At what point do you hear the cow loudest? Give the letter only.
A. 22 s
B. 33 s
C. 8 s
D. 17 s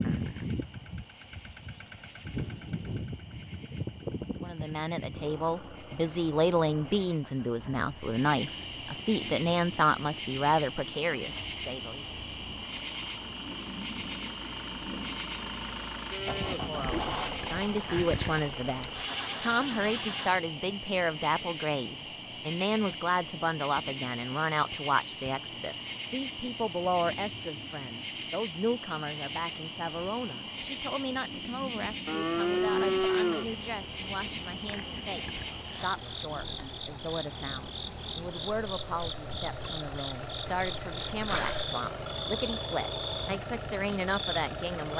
B.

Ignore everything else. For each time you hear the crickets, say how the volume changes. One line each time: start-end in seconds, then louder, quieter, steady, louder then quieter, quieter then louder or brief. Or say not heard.
0.0-44.9 louder.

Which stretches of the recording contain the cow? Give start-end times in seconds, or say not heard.
16.1-17.1, 32.0-33.5.